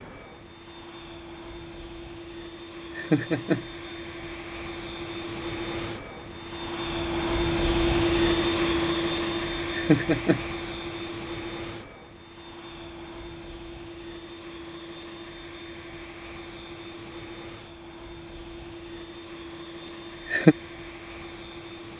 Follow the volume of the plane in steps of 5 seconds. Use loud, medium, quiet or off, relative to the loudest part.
quiet, loud, medium, quiet, quiet.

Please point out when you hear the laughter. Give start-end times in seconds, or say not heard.
3.0-3.6, 9.7-10.4, 19.9-20.6.